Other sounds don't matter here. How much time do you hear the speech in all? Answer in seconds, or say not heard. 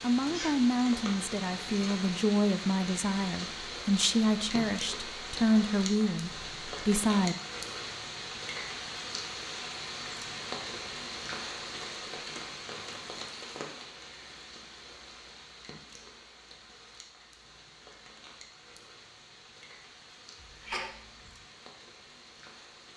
7 s.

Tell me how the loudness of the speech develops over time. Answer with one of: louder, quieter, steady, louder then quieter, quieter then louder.
steady.